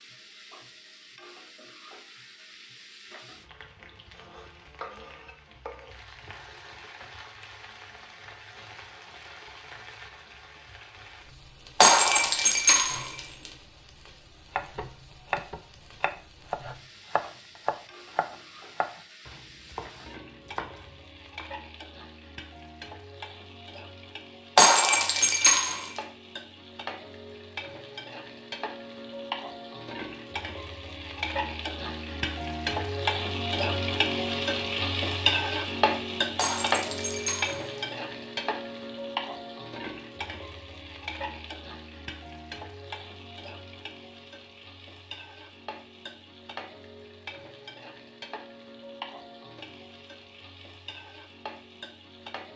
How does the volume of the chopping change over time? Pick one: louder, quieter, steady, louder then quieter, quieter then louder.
quieter.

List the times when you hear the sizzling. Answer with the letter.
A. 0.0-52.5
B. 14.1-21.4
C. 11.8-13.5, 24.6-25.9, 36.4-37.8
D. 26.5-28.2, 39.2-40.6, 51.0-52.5
A.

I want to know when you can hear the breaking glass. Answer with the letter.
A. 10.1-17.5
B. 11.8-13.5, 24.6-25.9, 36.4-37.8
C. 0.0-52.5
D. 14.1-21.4
B.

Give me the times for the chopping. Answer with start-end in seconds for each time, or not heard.
14.1-21.4.